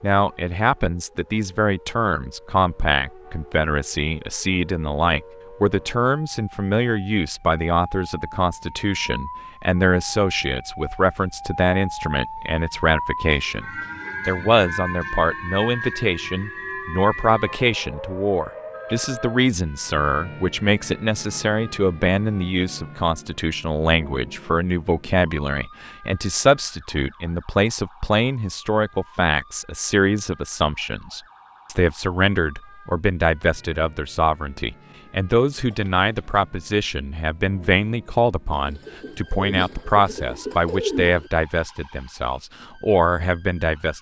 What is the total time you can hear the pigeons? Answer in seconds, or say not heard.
3 s.